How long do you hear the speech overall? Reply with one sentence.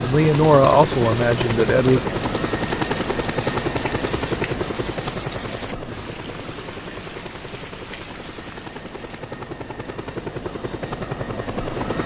The speech can be heard for 2 seconds in total.